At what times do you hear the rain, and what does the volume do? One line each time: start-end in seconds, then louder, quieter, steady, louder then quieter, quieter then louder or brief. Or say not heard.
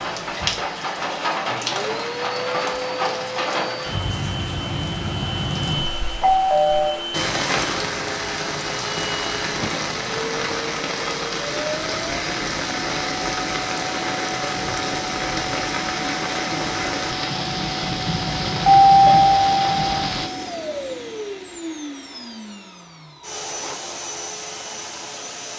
0.0-20.3 steady.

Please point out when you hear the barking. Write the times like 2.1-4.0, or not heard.
not heard.